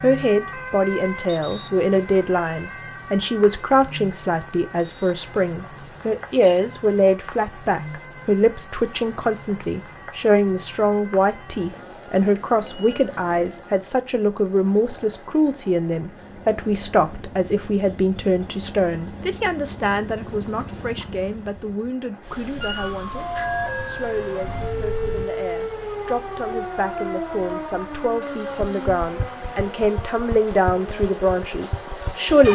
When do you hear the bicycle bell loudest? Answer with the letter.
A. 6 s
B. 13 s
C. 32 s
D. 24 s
D.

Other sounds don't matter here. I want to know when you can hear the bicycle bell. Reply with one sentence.
You can hear the bicycle bell from 12.3 to 13.0 s and from 23.4 to 25.2 s.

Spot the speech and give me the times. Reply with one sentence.
You can hear the speech from 0.0 to 32.5 s.